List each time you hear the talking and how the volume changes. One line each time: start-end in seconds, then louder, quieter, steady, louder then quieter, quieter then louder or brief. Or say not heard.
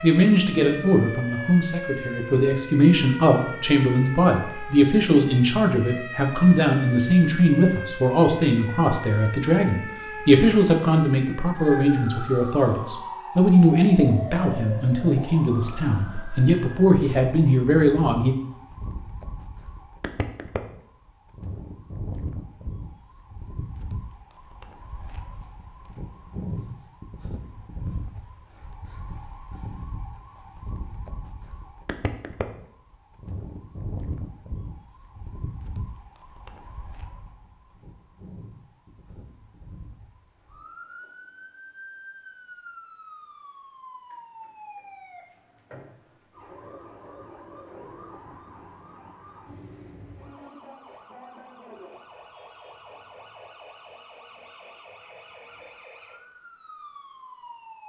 0.0-18.4 steady.